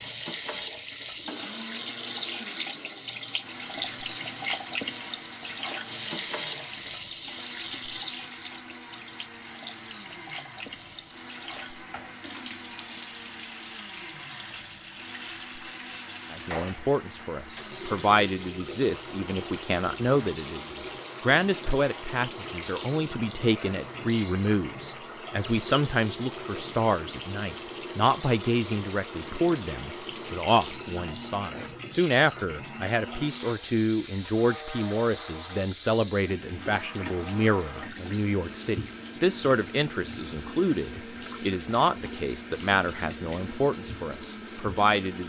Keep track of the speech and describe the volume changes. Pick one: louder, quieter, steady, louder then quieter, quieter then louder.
steady.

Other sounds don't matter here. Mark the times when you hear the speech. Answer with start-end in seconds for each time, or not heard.
16.3-45.2.